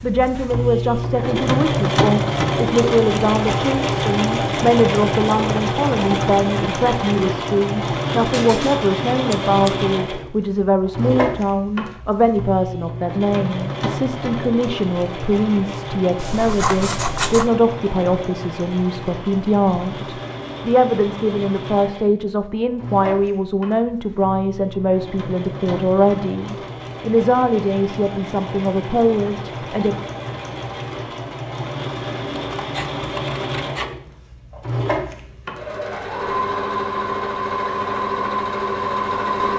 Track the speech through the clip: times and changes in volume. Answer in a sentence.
You can hear the speech from 0.0 to 29.9 s, at a steady volume.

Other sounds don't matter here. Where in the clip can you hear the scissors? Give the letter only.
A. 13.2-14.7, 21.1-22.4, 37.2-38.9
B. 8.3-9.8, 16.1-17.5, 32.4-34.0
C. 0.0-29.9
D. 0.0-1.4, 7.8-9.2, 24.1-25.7
B.